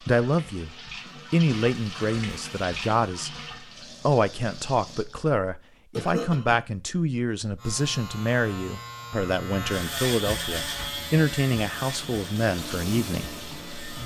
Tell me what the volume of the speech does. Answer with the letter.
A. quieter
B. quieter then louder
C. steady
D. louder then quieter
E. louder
C.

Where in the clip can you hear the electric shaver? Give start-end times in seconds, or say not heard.
7.5-14.0.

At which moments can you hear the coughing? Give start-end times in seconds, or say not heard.
6.0-6.6.